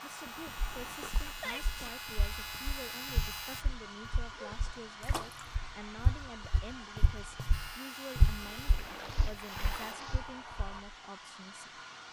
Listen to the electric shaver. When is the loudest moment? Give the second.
3 s.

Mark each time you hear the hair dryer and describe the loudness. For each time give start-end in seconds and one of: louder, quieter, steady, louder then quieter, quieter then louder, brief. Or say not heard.
0.0-12.0 steady.